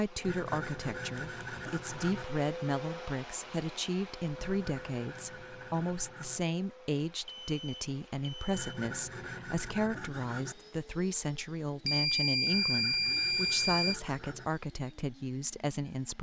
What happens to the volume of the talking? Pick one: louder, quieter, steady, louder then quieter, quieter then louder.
steady.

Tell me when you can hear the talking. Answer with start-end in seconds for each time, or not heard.
0.0-16.1.